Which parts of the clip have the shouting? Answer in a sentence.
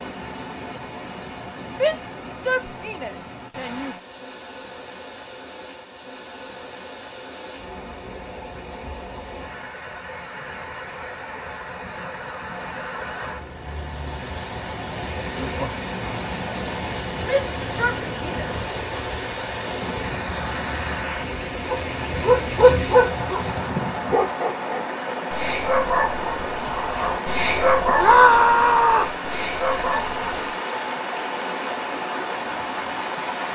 You can hear the shouting from 1.8 to 4.0 s, from 17.2 to 18.6 s and from 27.9 to 29.1 s.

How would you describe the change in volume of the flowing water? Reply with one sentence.
The volume of the flowing water goes up.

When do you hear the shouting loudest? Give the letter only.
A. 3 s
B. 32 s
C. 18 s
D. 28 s
D.